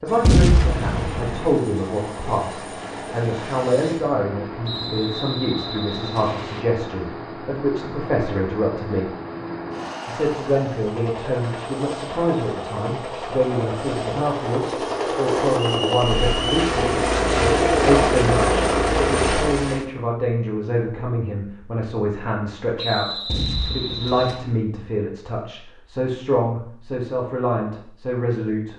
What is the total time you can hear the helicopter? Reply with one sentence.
You can hear the helicopter for 20 seconds altogether.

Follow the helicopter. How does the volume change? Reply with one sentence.
The loudness of the helicopter goes up.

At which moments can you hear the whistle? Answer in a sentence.
You can hear the whistle from 4.6 to 6.7 s, from 15.6 to 16.6 s and from 22.8 to 24.4 s.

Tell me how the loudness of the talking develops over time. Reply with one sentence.
The loudness of the talking stays about the same.